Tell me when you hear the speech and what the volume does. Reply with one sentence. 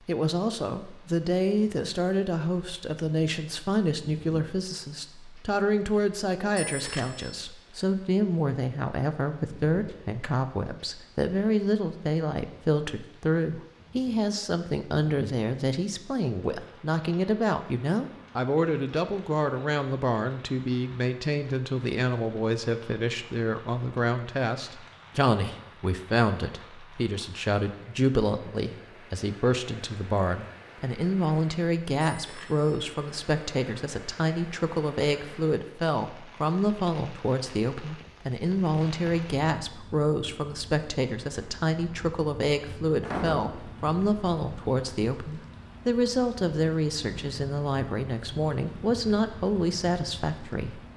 You can hear the speech from 0.1 to 50.8 s, at a steady volume.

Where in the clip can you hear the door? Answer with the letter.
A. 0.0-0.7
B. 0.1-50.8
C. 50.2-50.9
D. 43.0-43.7
D.